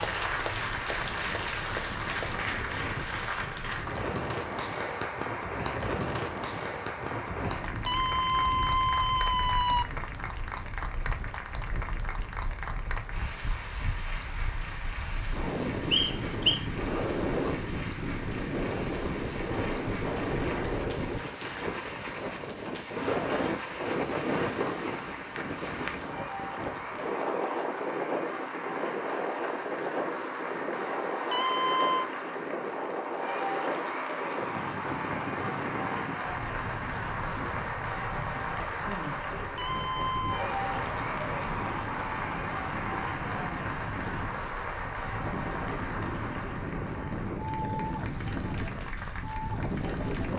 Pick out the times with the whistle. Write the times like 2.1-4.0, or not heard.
15.9-16.6.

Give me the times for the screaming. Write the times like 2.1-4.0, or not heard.
7.8-9.8, 31.3-32.1, 39.5-40.5.